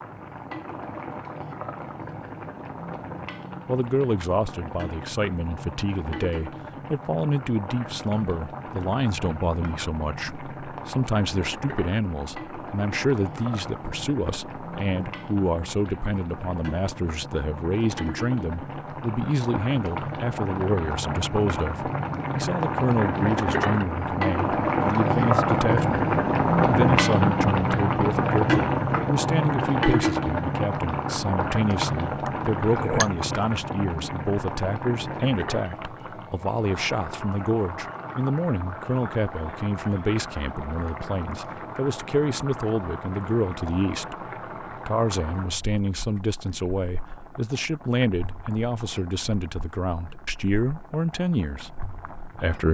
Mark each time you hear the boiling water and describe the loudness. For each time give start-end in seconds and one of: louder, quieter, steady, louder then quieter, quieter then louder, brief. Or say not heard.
0.0-52.6 louder then quieter.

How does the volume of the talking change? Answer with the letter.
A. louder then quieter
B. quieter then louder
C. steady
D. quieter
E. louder
C.